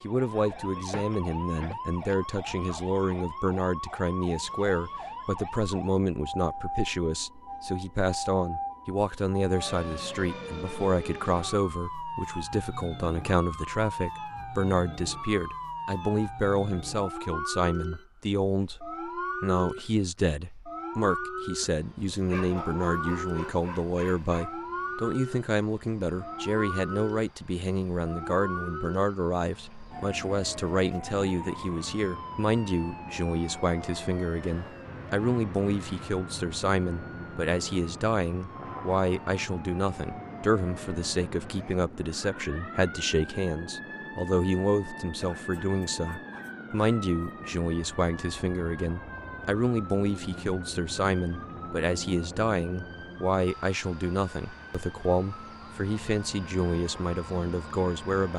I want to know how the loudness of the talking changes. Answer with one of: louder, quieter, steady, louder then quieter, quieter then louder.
steady.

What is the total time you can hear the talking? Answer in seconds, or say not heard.
58 s.